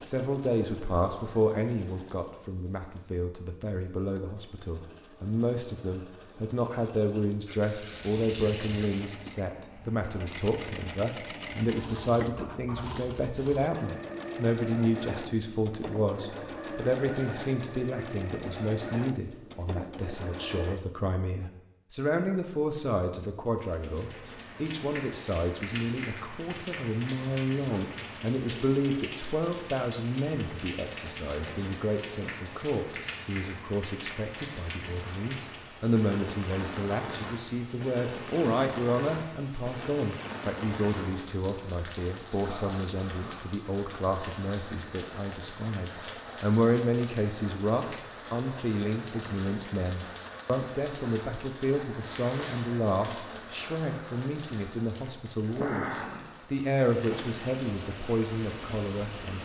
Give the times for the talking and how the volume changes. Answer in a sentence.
You can hear the talking from 0.1 to 59.4 s, at a steady volume.